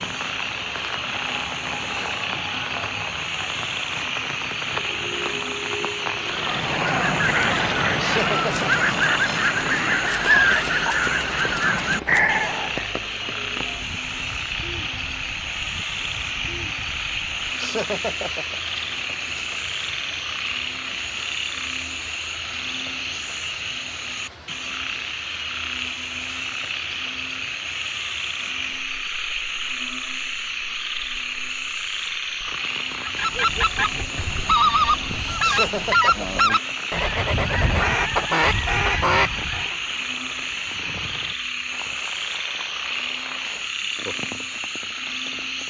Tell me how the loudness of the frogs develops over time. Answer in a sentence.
The loudness of the frogs stays about the same.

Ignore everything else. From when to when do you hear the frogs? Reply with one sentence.
You can hear the frogs from 0.0 to 45.6 s.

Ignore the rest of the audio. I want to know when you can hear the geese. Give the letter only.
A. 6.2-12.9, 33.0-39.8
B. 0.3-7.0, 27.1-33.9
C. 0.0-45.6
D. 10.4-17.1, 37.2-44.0
A.